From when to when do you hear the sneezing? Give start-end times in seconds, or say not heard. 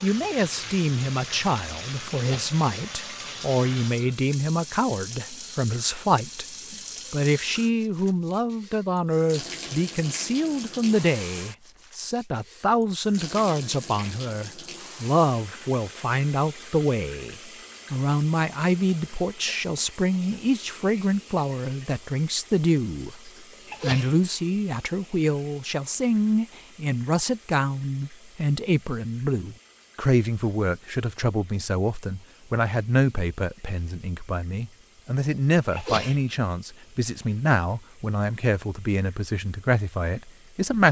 2.1-2.6, 23.6-24.1, 35.7-36.2.